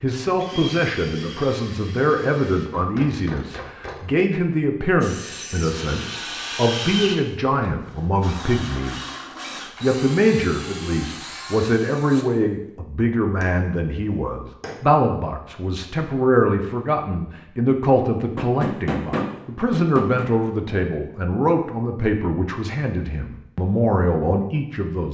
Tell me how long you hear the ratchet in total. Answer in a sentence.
The ratchet can't be heard in this clip.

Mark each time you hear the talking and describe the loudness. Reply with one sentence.
You can hear the talking from 0.0 to 25.0 s, at a steady volume.